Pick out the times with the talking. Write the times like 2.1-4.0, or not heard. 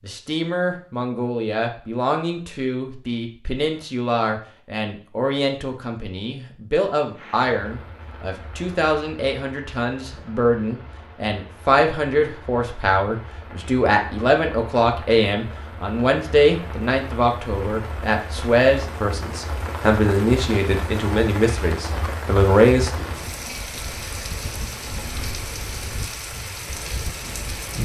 0.0-22.9.